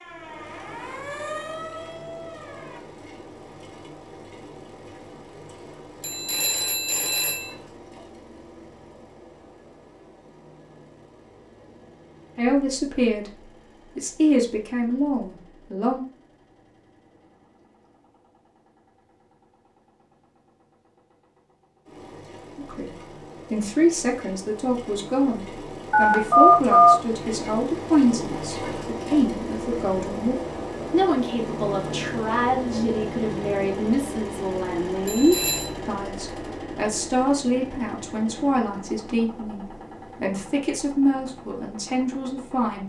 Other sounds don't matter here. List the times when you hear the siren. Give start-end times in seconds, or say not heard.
0.0-2.8.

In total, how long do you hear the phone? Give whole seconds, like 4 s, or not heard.
3 s.